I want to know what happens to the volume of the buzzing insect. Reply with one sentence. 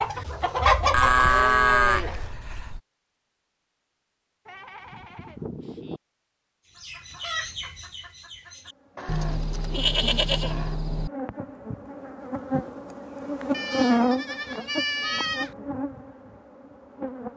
The volume of the buzzing insect goes up, then down.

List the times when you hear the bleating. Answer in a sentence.
The bleating can be heard from 0.9 to 2.8 s, from 4.5 to 6.0 s, from 9.1 to 11.1 s and from 13.5 to 15.6 s.